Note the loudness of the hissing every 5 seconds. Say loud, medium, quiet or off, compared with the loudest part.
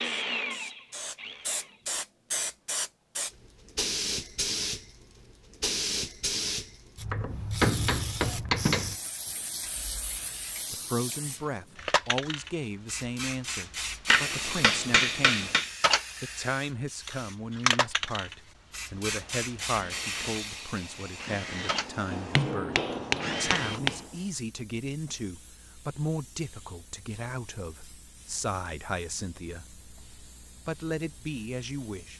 loud, loud, loud, loud, medium, quiet, quiet.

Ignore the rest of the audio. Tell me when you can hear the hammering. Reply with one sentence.
You can hear the hammering from 7.1 to 8.9 s, from 14.1 to 15.7 s and from 22.1 to 24.1 s.